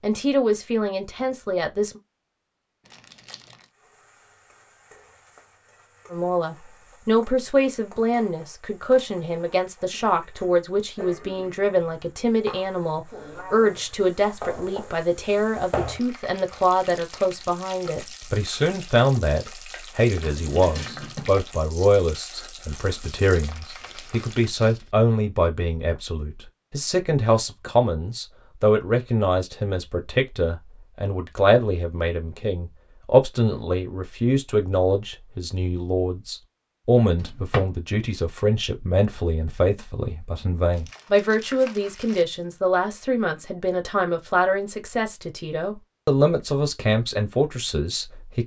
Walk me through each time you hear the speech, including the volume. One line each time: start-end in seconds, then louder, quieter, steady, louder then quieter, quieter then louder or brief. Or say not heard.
0.0-2.0 brief
6.1-48.4 steady.